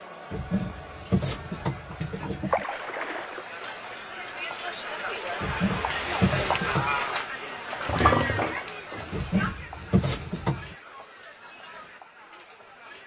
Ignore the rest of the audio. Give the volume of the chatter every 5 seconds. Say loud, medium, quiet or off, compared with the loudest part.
medium, loud, quiet.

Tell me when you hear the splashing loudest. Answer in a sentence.
The loudest moment of the splashing is at 8 seconds.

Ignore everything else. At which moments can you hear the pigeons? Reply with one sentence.
You can hear the pigeons from 0.3 to 2.6 s, from 5.4 to 7.0 s and from 9.1 to 10.8 s.